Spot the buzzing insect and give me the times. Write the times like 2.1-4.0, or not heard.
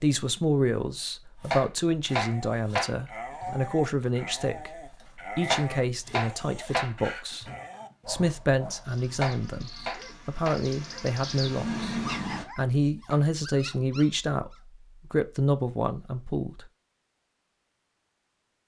8.8-12.4.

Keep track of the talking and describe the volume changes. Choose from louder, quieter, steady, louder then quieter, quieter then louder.
steady.